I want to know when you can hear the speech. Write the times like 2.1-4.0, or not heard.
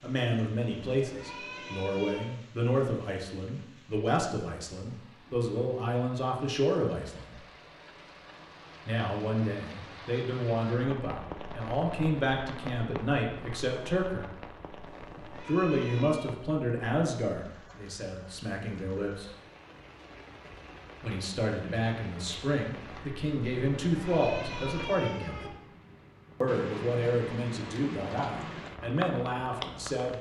0.0-7.3, 8.8-14.2, 15.4-19.3, 21.0-25.6, 26.4-30.1.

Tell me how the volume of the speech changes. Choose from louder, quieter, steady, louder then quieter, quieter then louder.
steady.